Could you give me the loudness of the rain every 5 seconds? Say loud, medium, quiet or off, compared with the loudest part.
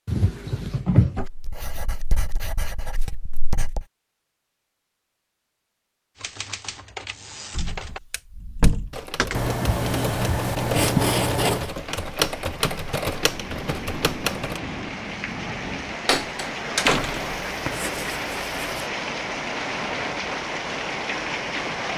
off, off, medium, loud, loud.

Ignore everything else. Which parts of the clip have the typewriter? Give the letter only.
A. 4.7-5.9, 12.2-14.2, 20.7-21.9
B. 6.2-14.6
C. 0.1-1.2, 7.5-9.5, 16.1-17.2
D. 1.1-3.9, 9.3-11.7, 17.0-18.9
B.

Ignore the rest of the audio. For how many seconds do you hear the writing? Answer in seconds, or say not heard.
7 s.